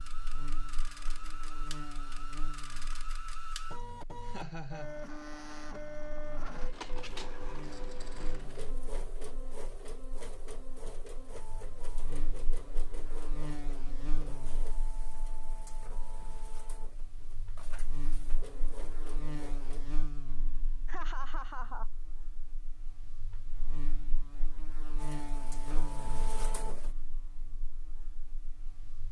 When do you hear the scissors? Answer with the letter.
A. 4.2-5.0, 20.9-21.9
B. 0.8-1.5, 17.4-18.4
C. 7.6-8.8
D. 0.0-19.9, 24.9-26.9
C.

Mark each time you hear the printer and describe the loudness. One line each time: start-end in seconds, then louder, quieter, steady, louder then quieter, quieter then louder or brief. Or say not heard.
0.0-19.9 quieter
24.9-26.9 brief.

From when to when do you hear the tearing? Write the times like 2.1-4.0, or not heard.
not heard.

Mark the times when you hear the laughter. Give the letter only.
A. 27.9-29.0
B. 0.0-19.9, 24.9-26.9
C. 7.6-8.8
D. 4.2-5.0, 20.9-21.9
D.